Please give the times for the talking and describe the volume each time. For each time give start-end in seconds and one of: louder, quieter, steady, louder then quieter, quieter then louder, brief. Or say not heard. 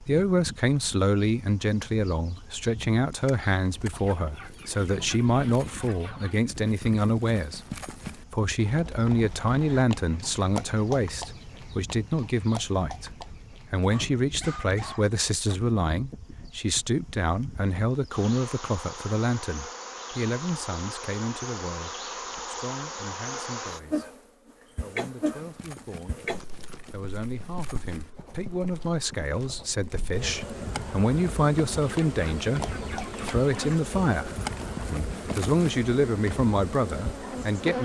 0.0-37.8 quieter then louder.